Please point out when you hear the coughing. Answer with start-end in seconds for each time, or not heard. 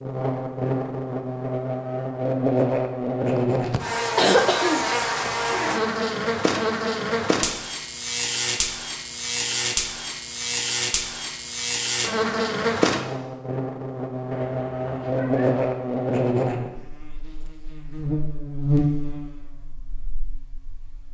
3.4-5.3.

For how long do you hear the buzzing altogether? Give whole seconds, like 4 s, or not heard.
21 s.